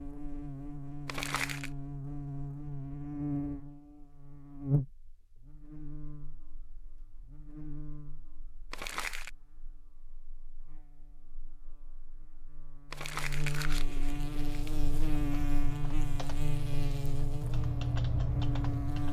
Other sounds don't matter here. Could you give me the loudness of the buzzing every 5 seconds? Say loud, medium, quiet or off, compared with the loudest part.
loud, quiet, medium, loud.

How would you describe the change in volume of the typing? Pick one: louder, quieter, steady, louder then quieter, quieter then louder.
louder.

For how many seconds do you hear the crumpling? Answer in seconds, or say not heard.
3 s.